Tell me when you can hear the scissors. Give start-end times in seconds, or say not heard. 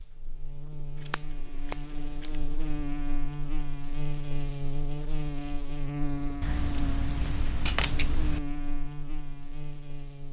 0.9-2.4, 6.4-8.4.